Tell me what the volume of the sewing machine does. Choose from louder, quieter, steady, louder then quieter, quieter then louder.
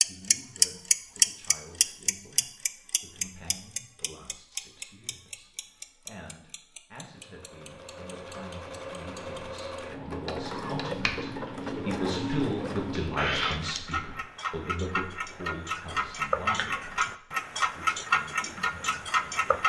louder.